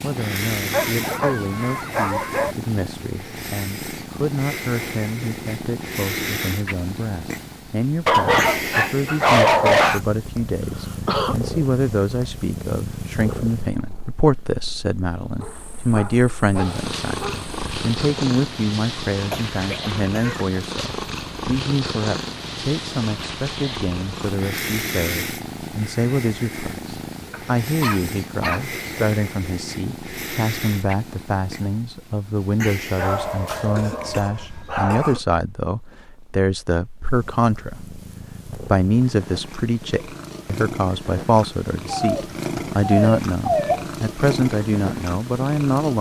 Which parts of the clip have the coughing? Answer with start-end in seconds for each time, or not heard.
10.6-11.3, 19.3-20.6, 33.8-35.2.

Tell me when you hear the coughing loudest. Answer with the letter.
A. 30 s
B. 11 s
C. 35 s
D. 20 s
B.